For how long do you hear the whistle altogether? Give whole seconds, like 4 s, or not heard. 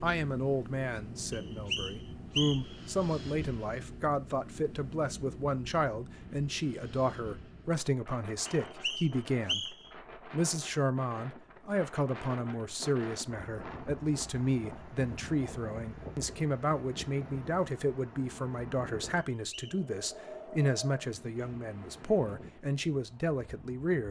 3 s.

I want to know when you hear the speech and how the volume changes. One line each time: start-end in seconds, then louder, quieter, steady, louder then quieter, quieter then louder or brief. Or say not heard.
0.0-24.0 steady.